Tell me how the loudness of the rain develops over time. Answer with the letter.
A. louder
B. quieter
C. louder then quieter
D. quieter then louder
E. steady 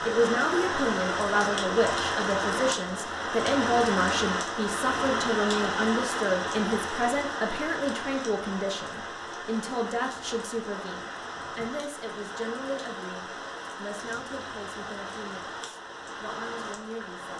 B.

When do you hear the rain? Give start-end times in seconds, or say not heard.
0.0-17.3.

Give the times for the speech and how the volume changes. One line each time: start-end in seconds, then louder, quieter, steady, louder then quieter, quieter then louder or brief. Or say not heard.
0.0-17.3 quieter.